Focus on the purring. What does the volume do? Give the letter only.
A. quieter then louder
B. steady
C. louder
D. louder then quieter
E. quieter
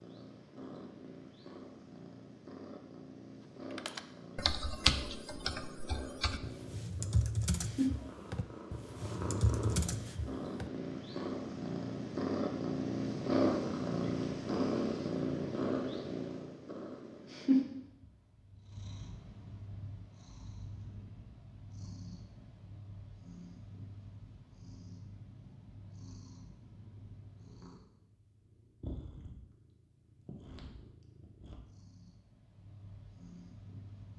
D.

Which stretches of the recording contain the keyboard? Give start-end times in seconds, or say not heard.
3.8-10.7.